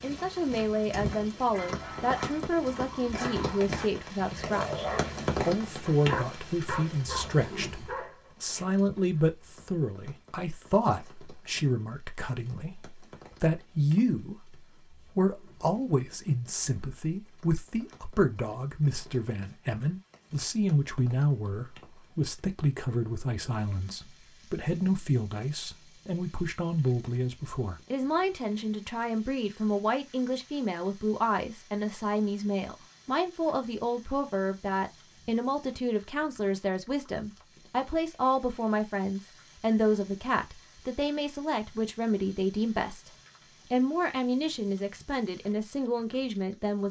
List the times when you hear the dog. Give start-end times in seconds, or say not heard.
1.5-9.8.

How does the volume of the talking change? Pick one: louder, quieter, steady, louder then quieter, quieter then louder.
steady.